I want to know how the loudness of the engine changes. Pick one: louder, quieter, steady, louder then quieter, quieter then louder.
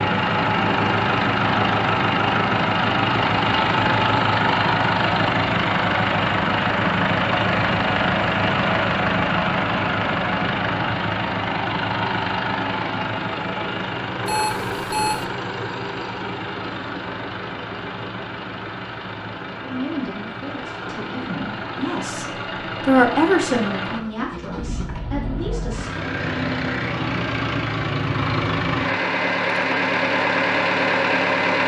quieter then louder.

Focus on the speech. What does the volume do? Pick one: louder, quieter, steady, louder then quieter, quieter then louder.
louder then quieter.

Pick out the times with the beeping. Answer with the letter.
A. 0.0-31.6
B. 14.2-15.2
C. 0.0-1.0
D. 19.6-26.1
B.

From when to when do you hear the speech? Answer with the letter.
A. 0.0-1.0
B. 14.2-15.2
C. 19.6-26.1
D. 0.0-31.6
C.